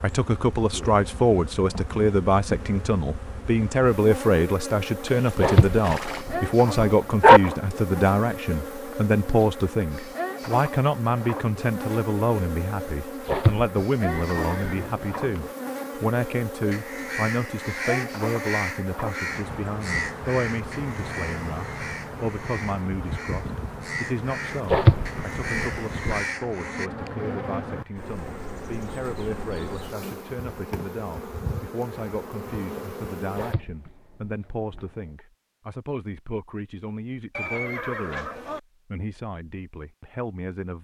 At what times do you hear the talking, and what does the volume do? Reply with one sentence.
The talking can be heard from 0.0 to 40.7 s, getting quieter.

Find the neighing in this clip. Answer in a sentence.
You can hear the neighing from 5.0 to 6.2 s, from 14.1 to 15.5 s and from 37.3 to 38.6 s.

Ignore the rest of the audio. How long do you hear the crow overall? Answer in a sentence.
You can hear the crow for 10 seconds altogether.